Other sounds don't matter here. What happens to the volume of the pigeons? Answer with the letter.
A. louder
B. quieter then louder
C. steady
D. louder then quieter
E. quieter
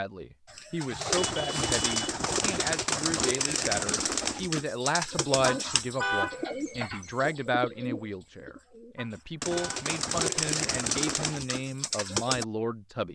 B.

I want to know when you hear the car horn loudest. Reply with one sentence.
The volume of the car horn peaks at 6 seconds.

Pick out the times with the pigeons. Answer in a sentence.
You can hear the pigeons from 0.5 to 12.4 s.